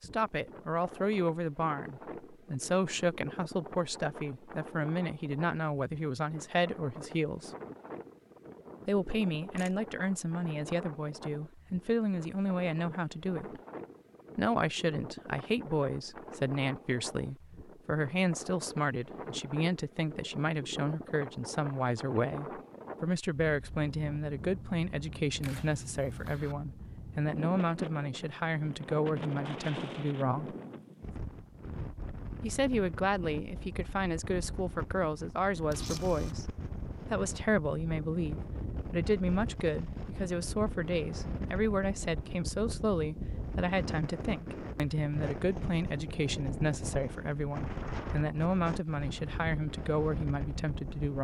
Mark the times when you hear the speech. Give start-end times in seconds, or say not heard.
0.0-7.5, 8.8-13.6, 14.3-30.6, 32.4-36.5, 37.1-51.1.